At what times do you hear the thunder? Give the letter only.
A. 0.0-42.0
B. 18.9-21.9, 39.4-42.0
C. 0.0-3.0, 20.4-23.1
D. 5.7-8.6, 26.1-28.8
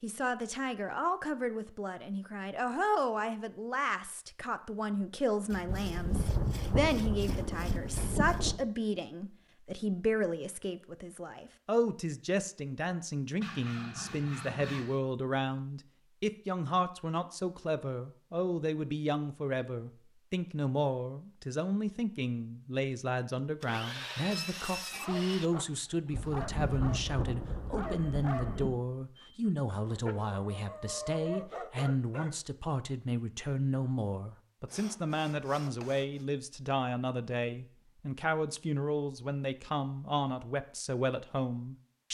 D.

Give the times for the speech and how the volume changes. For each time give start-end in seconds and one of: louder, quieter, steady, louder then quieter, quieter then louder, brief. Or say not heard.
0.0-42.0 steady.